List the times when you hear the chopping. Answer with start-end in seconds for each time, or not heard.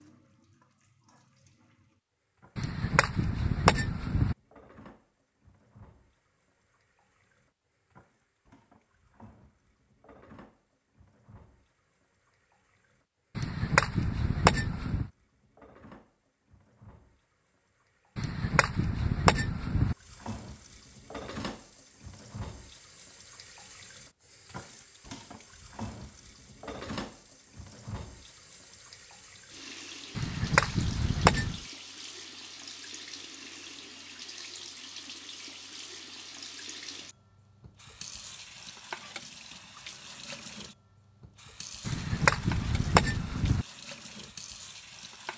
2.5-4.3, 13.3-15.1, 18.1-19.9, 30.1-31.6, 41.9-43.6.